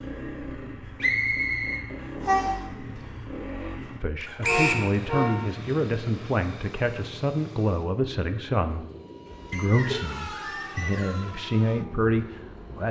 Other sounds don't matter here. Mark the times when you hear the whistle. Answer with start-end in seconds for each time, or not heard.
1.0-2.5, 4.4-4.8, 9.5-11.3.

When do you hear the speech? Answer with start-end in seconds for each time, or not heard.
4.0-8.8, 9.5-12.8.